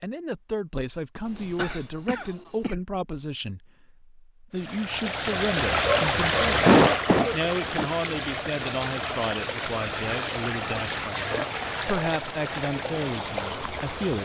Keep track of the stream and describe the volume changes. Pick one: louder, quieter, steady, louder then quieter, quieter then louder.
quieter.